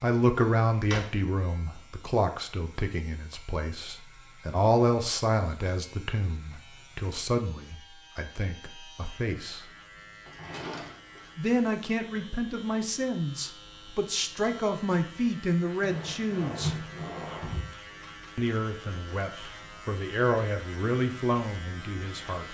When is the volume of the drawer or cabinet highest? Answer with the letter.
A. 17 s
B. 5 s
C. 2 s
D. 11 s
A.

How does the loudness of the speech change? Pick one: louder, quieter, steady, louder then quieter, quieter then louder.
steady.